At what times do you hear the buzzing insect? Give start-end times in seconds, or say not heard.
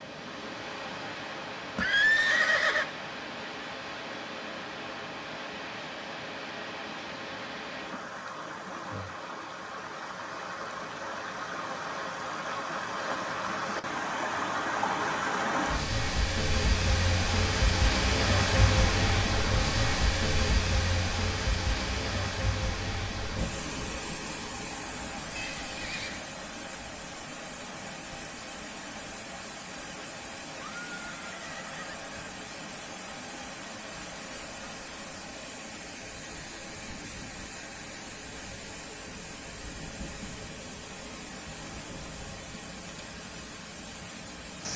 not heard.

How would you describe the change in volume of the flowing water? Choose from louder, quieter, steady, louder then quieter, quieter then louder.
louder then quieter.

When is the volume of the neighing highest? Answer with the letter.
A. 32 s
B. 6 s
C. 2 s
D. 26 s
C.